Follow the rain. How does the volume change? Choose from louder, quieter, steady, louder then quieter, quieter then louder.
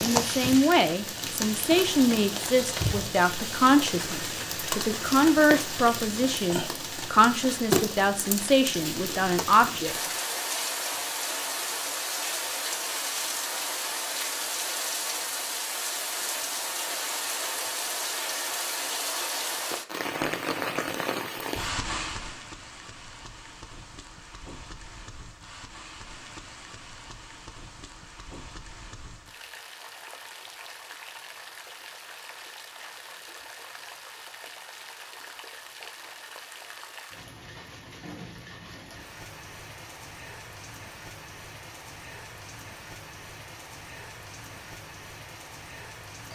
quieter.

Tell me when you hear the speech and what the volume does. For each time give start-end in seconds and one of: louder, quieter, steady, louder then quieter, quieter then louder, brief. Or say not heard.
0.0-9.9 steady.